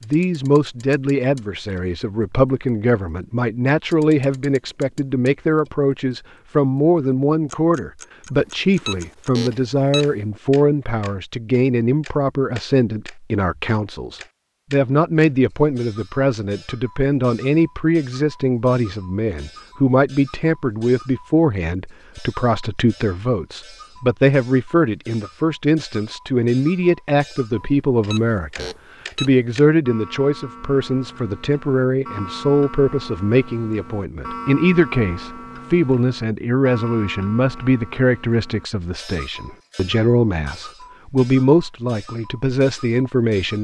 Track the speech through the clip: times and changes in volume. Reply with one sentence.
The speech can be heard from 0.0 to 43.6 s, at a steady volume.